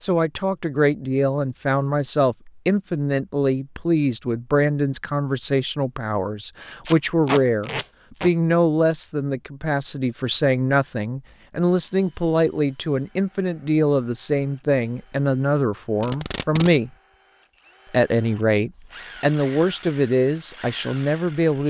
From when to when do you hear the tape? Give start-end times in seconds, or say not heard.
6.8-8.3, 16.0-16.7.